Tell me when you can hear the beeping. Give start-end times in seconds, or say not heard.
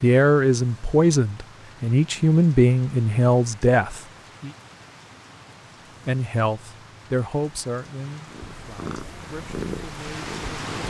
not heard.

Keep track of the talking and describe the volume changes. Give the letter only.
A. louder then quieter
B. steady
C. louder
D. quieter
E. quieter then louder
D.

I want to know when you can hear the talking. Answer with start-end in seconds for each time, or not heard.
0.0-4.5, 6.0-10.7.